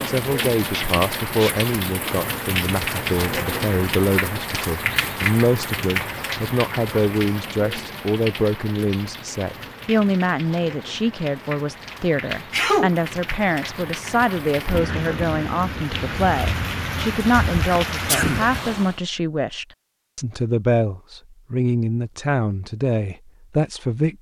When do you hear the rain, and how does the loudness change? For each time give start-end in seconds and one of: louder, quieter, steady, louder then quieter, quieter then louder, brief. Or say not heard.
0.0-19.0 quieter then louder.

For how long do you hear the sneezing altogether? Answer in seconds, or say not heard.
2 s.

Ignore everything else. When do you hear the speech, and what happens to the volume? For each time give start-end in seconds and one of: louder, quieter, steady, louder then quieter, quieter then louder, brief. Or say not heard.
0.1-24.1 steady.